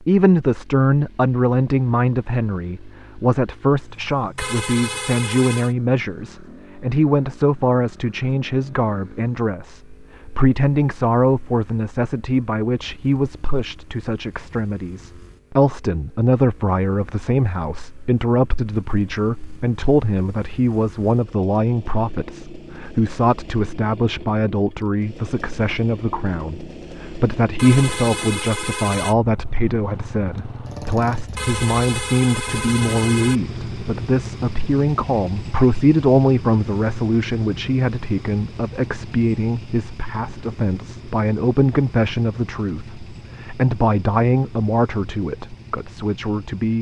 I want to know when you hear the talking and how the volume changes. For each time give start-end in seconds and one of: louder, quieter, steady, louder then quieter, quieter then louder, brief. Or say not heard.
0.0-46.7 steady.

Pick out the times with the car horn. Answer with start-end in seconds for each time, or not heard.
4.3-5.8, 27.6-29.1, 31.4-33.4.